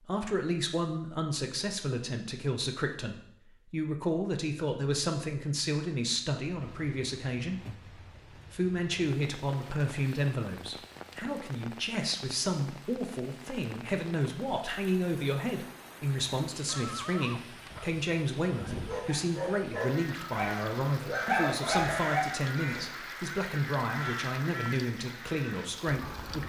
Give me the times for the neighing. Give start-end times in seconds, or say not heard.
16.6-17.9.